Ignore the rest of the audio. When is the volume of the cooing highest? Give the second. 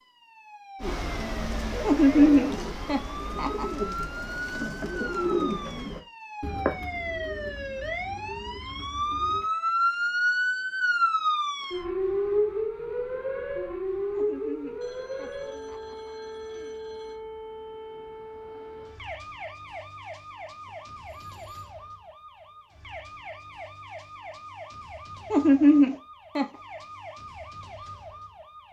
5 s.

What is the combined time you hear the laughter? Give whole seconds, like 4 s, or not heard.
6 s.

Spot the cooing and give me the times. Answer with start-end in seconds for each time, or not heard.
0.8-9.4.